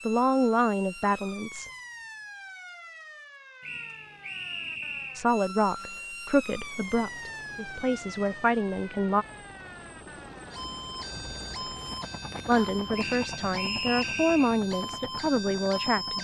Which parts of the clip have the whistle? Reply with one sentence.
You can hear the whistle from 3.6 to 5.2 s and from 12.9 to 14.6 s.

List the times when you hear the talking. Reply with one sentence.
You can hear the talking from 0.1 to 1.7 s, from 5.2 to 9.2 s and from 12.4 to 16.1 s.